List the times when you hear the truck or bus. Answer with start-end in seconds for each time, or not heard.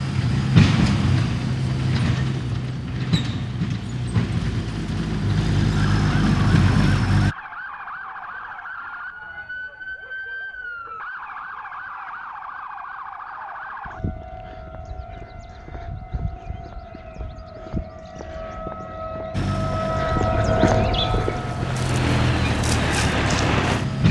0.0-7.3, 19.3-24.0.